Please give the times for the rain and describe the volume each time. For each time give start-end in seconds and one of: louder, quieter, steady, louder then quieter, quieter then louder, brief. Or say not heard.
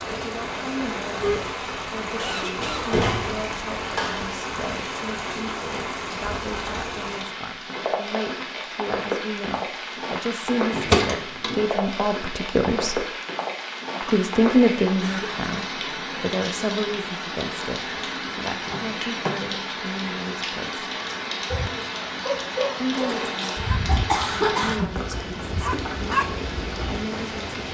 0.0-27.6 steady.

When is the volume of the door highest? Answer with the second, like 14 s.
11 s.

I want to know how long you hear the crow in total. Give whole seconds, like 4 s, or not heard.
not heard.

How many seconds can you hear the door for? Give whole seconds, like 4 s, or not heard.
4 s.